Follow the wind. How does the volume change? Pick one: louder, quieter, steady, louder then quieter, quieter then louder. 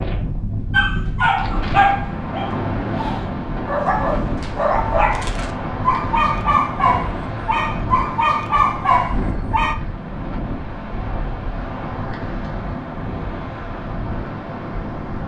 steady.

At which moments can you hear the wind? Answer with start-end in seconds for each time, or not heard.
0.0-15.2.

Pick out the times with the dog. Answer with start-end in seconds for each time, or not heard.
0.7-9.8.